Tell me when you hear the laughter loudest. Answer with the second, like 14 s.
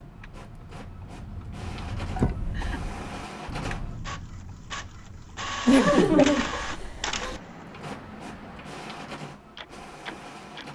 6 s.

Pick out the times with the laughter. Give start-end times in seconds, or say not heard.
2.1-2.8, 5.7-7.4.